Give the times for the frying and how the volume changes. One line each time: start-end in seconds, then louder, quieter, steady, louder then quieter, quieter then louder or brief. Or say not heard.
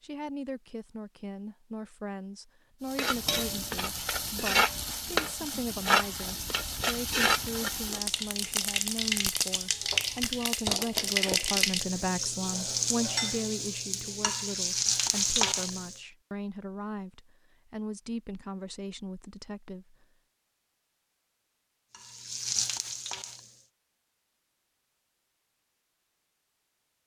2.9-16.0 steady
21.9-23.6 brief.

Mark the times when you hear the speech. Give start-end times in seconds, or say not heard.
0.0-20.1.